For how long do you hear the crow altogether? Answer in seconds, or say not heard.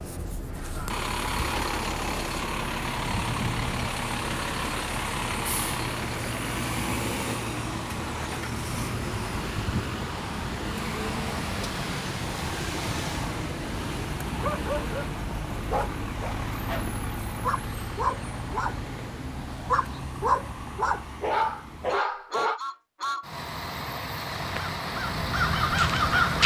2 s.